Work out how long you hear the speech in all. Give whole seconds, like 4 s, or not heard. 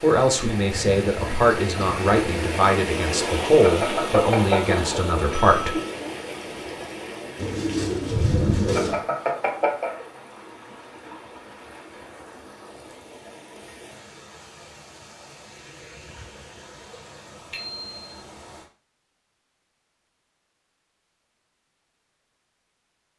6 s.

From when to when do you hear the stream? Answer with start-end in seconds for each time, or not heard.
0.0-18.7.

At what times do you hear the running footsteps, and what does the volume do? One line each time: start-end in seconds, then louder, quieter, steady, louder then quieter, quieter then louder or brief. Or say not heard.
not heard.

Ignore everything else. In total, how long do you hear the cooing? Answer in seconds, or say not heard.
2 s.